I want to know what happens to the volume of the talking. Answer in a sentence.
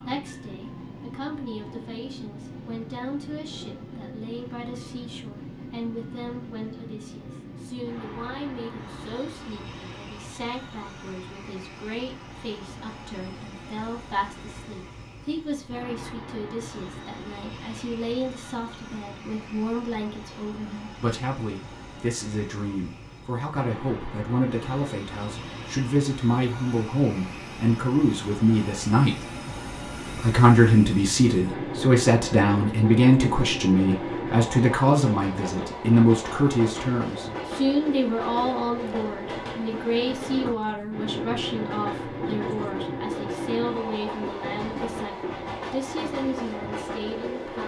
The volume of the talking goes up, then down.